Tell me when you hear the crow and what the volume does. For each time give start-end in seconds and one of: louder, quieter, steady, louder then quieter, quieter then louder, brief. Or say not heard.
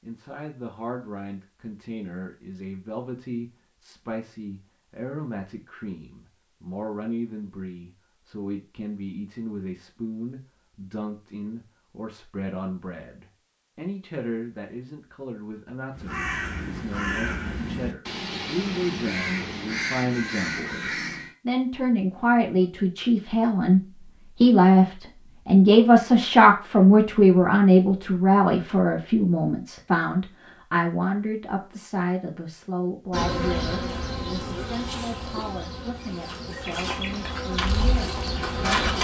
15.9-21.4 steady.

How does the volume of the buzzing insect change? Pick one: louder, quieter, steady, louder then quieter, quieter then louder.
quieter then louder.